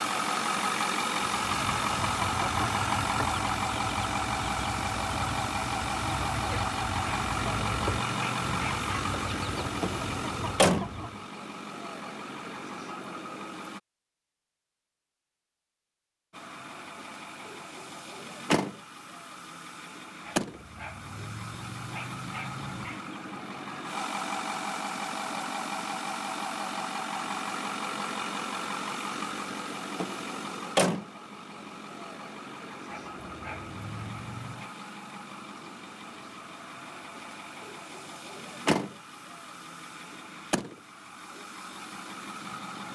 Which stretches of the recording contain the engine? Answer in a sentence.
The engine can be heard from 0.0 to 13.8 s and from 16.3 to 42.9 s.